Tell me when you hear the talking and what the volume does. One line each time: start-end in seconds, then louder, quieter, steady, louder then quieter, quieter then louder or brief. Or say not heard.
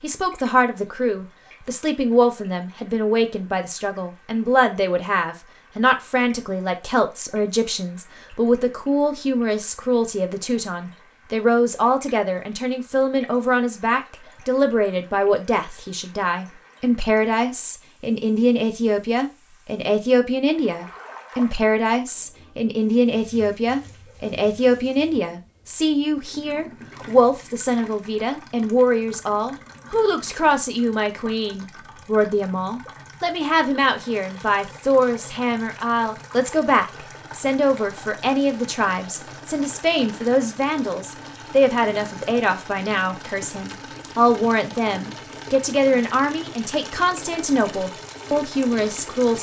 0.0-49.3 steady.